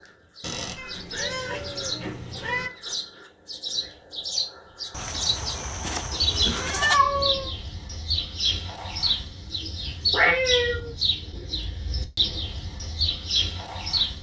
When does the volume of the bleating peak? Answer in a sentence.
The loudest moment of the bleating is at 7 seconds.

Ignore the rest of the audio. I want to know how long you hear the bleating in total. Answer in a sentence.
The bleating can be heard for 2 seconds in total.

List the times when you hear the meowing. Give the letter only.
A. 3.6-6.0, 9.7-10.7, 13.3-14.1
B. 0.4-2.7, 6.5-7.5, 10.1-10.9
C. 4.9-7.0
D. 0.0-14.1
B.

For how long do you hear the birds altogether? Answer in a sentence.
You can hear the birds for 14 seconds altogether.